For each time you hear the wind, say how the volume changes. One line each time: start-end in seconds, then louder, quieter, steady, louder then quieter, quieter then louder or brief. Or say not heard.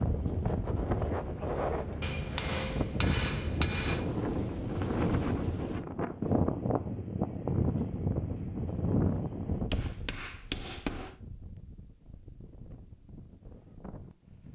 0.0-14.5 quieter.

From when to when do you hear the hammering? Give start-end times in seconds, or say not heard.
2.0-4.0, 9.7-11.2.